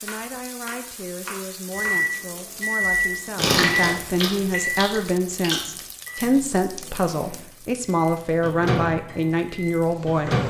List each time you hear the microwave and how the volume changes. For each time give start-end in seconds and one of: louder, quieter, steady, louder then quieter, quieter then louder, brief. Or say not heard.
1.7-10.4 quieter then louder.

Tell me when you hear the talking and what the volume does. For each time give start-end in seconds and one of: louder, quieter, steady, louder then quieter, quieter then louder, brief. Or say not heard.
0.0-10.4 louder.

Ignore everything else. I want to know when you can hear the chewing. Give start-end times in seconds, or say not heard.
3.4-5.7.